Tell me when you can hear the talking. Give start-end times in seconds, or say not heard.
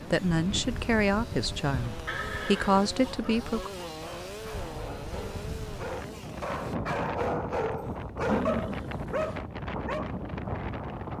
0.1-3.7.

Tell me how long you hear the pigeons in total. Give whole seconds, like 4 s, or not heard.
not heard.